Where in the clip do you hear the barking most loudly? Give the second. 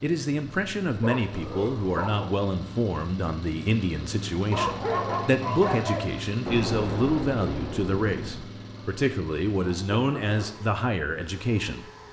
5 s.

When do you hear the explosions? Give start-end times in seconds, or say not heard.
6.5-8.4.